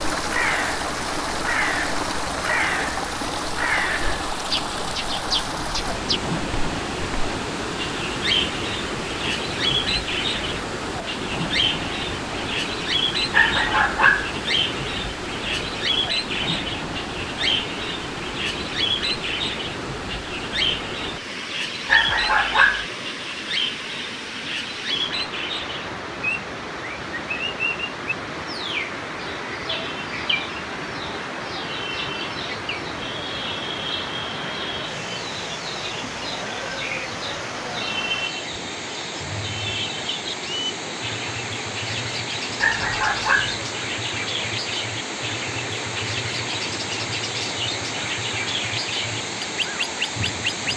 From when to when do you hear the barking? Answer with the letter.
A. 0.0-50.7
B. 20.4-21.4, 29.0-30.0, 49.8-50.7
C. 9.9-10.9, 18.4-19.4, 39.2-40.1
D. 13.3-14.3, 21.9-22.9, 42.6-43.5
D.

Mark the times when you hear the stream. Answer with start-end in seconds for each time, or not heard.
0.0-50.7.